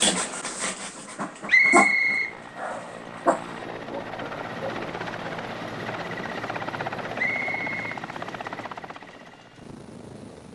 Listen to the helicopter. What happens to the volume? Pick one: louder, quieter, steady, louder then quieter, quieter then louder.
louder then quieter.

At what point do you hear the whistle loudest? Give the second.
2 s.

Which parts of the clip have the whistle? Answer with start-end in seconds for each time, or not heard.
1.4-2.3, 7.2-7.8.